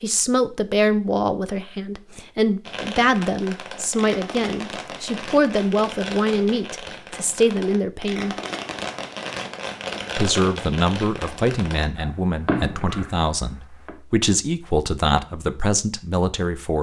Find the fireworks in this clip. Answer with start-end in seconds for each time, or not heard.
2.6-13.9.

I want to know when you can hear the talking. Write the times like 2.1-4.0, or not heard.
0.0-8.3, 10.2-16.7.